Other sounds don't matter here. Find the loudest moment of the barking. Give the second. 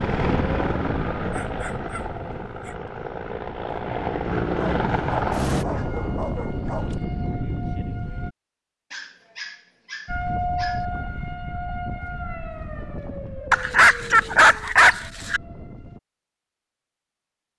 14 s.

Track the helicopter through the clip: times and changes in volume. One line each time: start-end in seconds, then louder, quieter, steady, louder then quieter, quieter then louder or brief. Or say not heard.
0.0-5.7 quieter then louder.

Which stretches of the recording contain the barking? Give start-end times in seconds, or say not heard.
1.2-2.8, 4.5-6.9, 8.9-10.8, 13.5-15.4.